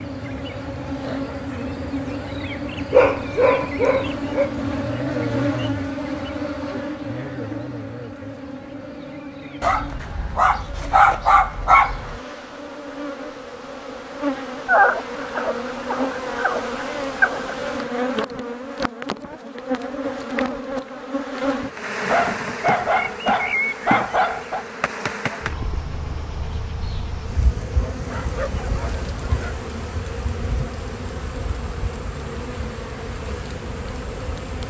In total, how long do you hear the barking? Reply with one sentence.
You can hear the barking for 11 seconds altogether.